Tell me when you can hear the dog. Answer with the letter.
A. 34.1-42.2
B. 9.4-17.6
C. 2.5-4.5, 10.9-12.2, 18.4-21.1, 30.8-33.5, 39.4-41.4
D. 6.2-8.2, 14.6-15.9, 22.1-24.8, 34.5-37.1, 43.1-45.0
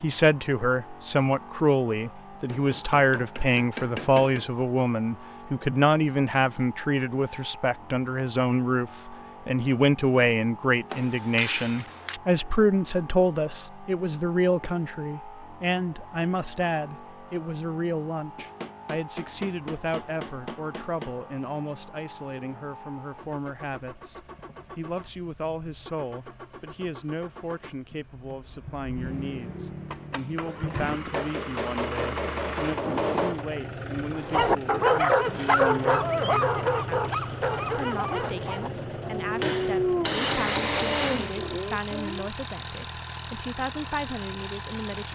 A.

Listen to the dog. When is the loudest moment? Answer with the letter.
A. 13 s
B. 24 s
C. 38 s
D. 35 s
D.